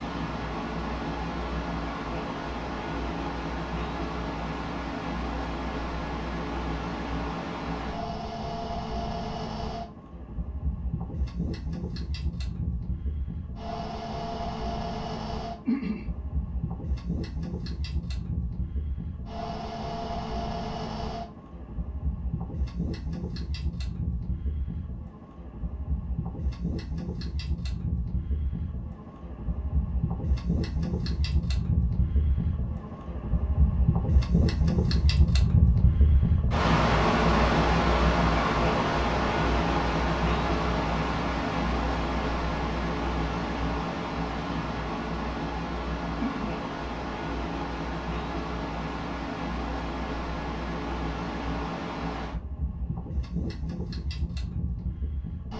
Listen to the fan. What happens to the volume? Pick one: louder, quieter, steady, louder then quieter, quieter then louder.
louder then quieter.